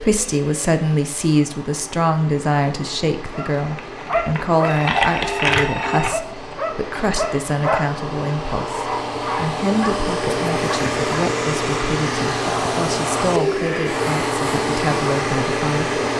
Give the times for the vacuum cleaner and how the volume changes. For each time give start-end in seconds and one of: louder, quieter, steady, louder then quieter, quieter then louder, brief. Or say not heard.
0.0-16.1 louder.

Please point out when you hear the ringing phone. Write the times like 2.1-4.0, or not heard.
4.6-6.1.